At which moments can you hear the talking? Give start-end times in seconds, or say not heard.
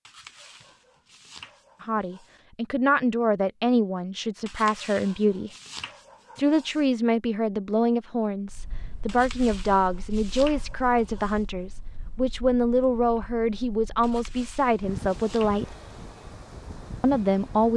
1.8-5.5, 6.3-15.7, 17.0-17.7.